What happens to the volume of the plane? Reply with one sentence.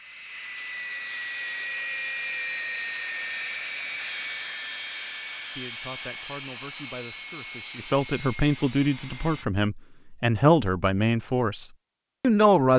The volume of the plane goes down.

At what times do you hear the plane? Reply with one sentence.
The plane can be heard from 0.0 to 9.4 s.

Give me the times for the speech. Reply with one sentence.
The speech can be heard from 5.5 to 12.7 s.